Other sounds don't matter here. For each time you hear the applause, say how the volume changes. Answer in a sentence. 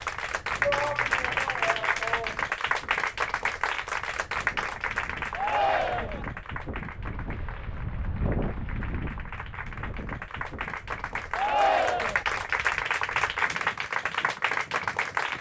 The applause can be heard from 0.0 to 15.3 s, getting quieter then louder.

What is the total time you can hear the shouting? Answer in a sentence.
The shouting can be heard for 4 seconds in total.